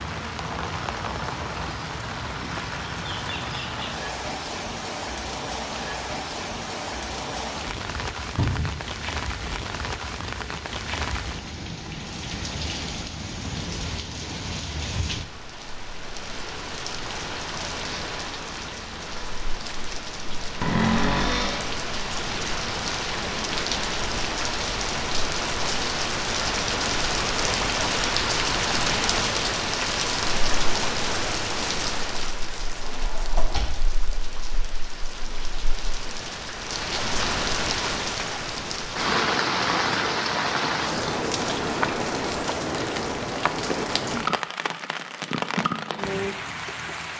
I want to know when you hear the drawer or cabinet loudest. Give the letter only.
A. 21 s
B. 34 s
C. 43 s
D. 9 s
A.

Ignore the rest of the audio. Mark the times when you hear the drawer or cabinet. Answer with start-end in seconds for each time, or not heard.
8.3-8.8, 20.6-21.8, 32.8-33.8.